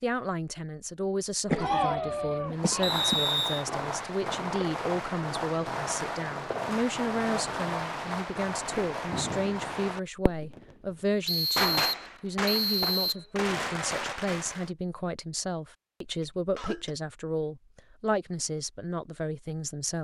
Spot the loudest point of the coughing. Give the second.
2 s.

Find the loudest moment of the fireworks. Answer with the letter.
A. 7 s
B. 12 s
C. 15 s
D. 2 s
B.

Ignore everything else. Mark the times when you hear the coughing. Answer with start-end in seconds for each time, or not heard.
1.5-3.2, 16.2-16.9.